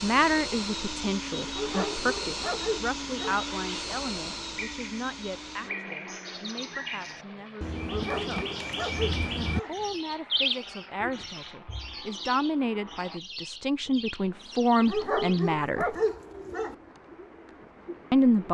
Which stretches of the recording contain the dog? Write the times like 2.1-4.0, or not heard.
1.4-3.4, 7.8-9.8, 14.8-16.8.